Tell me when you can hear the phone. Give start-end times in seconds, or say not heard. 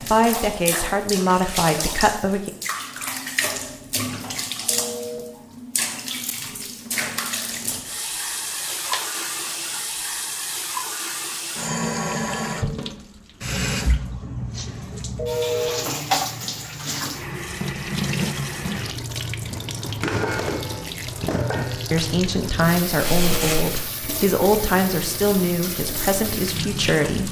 4.7-5.2, 15.2-15.7, 23.1-23.6.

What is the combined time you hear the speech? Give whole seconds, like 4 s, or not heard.
8 s.